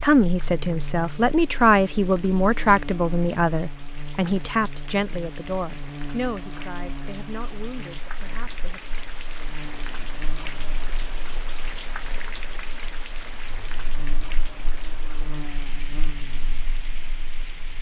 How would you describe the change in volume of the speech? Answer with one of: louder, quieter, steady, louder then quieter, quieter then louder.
quieter.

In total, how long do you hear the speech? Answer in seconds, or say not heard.
9 s.